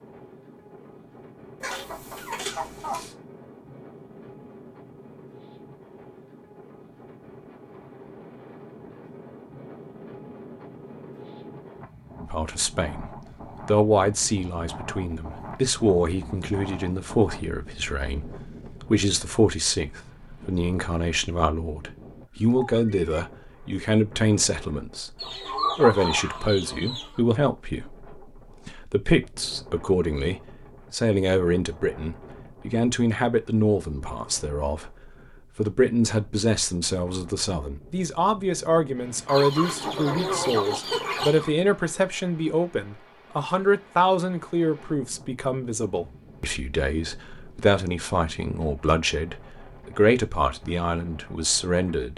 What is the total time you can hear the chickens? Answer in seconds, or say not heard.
6 s.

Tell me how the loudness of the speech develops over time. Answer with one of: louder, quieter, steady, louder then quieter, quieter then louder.
steady.